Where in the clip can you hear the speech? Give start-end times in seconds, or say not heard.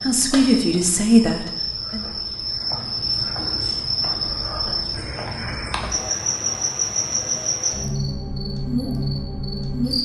0.0-2.0.